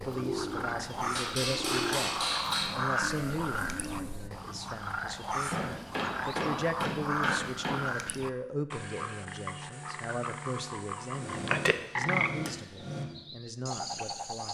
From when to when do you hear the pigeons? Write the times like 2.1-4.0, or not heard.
0.0-4.3.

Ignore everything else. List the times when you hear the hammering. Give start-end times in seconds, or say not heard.
1.1-2.8, 5.5-7.8, 11.1-13.1.